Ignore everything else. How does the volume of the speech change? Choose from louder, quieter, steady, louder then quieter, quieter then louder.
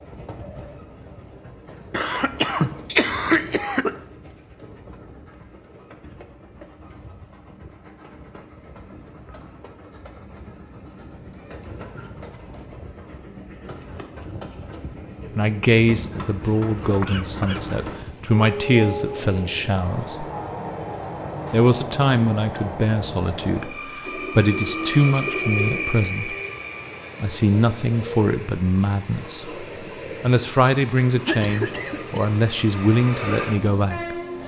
steady.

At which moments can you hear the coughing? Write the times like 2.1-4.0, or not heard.
1.9-3.9, 16.4-18.1, 31.2-32.3.